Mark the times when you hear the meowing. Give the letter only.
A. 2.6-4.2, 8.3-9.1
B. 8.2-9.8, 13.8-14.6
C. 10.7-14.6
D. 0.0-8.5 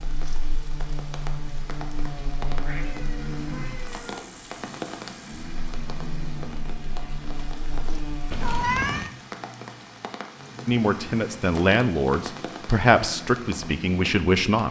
A.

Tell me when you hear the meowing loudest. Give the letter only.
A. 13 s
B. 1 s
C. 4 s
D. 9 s
D.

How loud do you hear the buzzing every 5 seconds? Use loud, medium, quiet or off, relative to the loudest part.
loud, loud, off.